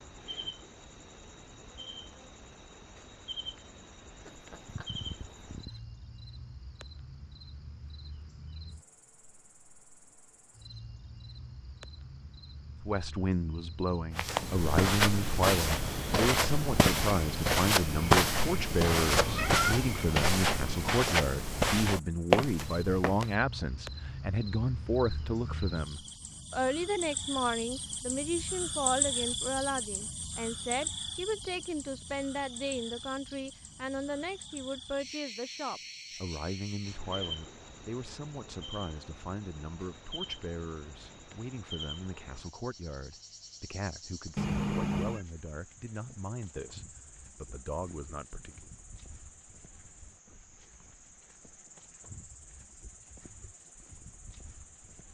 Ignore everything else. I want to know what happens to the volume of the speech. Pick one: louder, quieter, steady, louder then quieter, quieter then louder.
quieter.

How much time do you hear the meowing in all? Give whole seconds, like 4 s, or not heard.
3 s.